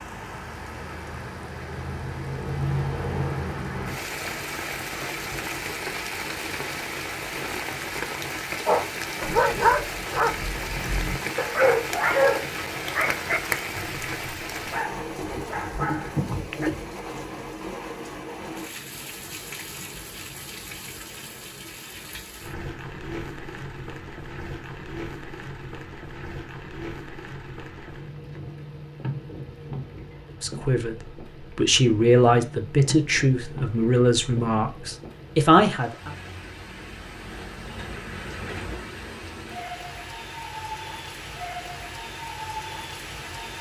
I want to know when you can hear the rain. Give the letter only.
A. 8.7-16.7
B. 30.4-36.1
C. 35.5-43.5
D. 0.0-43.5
D.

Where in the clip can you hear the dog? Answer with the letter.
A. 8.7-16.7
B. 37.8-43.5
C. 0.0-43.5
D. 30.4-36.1
A.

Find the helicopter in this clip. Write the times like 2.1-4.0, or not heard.
not heard.